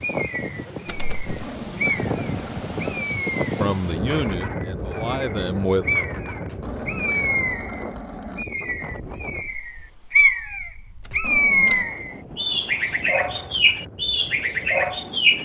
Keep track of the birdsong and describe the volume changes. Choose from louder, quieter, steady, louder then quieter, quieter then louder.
louder.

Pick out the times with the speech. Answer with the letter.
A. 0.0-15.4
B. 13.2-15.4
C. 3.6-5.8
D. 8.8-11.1
C.